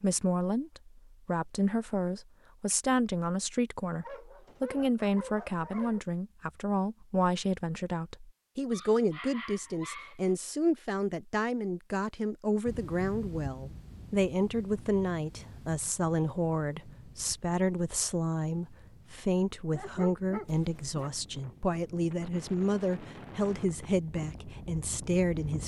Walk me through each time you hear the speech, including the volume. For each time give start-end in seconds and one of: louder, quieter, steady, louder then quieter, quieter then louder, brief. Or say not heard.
0.0-25.6 steady.